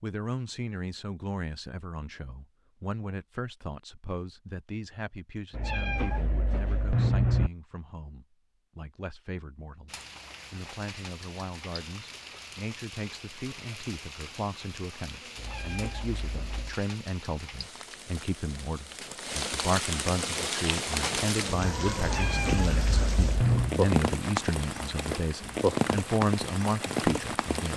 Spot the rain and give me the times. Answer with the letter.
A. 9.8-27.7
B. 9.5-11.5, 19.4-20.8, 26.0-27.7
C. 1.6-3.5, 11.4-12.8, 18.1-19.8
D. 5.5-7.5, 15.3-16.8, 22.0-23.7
A.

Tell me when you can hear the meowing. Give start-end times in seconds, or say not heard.
5.5-7.5, 15.3-16.8, 22.0-23.7.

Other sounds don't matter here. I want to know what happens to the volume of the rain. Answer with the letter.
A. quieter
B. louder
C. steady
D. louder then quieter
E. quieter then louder
B.